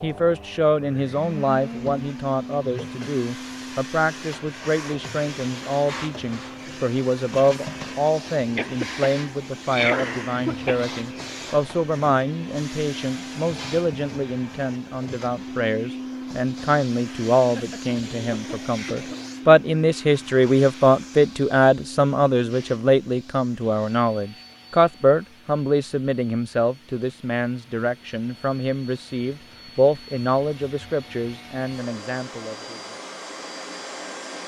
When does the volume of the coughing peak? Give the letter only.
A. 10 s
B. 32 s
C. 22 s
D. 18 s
A.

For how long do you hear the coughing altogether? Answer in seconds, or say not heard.
4 s.